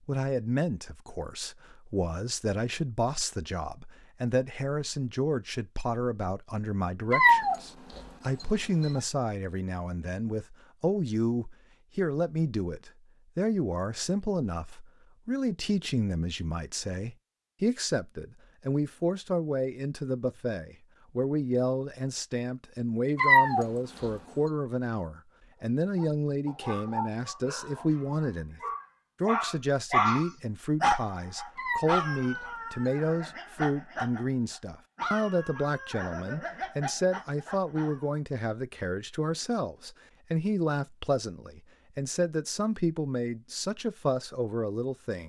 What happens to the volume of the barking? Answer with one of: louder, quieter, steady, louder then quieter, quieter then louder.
louder then quieter.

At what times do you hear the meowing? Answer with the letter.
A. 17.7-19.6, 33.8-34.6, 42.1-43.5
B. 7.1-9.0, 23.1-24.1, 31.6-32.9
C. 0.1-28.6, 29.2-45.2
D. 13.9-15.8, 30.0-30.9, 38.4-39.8
B.